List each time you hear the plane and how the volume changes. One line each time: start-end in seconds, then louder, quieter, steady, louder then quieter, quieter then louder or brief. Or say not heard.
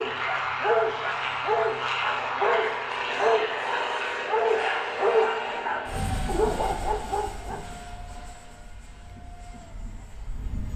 0.0-10.7 quieter.